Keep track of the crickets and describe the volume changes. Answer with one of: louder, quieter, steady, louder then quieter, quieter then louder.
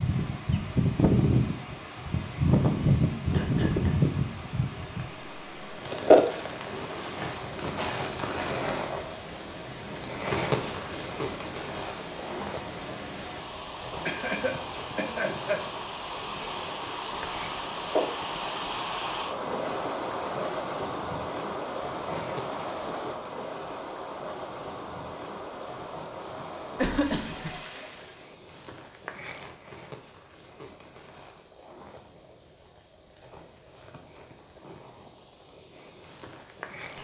quieter.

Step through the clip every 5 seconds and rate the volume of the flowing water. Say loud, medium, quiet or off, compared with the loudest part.
medium, medium, medium, loud, loud, medium, off, off.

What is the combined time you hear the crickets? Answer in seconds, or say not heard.
37 s.